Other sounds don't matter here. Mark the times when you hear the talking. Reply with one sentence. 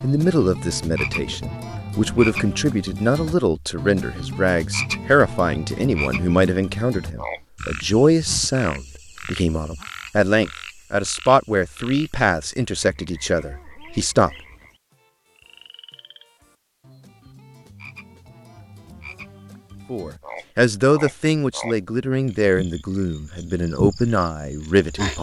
The talking can be heard from 0.0 to 14.3 s and from 19.9 to 25.1 s.